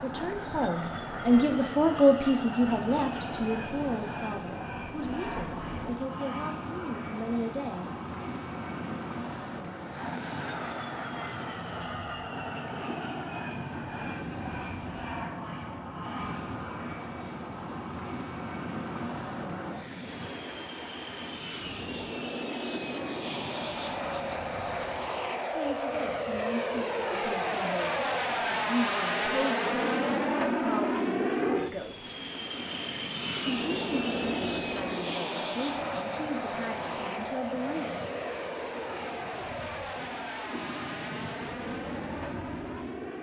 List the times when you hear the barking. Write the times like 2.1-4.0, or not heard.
not heard.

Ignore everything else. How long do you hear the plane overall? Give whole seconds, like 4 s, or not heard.
43 s.